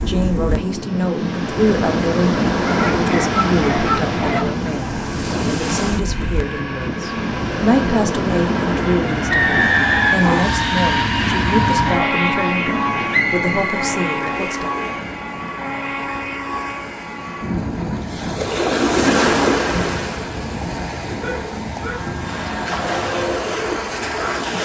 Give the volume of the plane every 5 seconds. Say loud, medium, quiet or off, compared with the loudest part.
medium, medium, loud, medium, medium.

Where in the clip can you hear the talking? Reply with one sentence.
The talking can be heard from 0.1 to 14.7 s.